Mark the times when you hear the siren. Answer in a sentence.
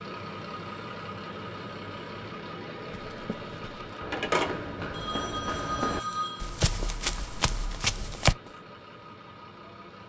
You can't hear the siren here.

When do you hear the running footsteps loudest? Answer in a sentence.
The volume of the running footsteps peaks at 8 seconds.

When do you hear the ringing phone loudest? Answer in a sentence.
The loudest moment of the ringing phone is at 4 seconds.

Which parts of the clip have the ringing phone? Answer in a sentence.
The ringing phone can be heard from 3.9 to 6.5 s.